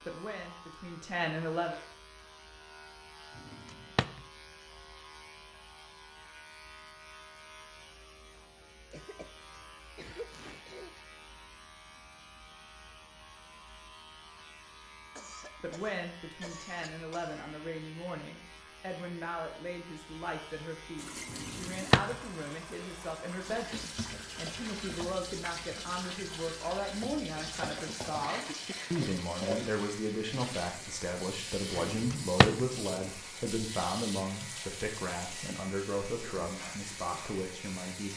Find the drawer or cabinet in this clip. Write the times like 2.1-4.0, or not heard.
3.4-4.2, 21.3-22.1, 31.8-32.6.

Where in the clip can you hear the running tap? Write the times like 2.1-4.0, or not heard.
20.9-38.1.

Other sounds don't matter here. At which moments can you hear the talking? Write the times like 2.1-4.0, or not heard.
0.1-1.8, 15.6-38.1.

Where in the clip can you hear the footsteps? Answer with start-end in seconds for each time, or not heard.
not heard.